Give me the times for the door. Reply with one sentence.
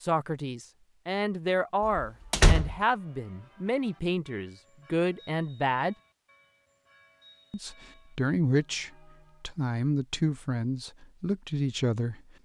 You can hear the door from 1.9 to 2.8 s.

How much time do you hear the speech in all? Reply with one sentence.
The speech can be heard for 11 seconds in total.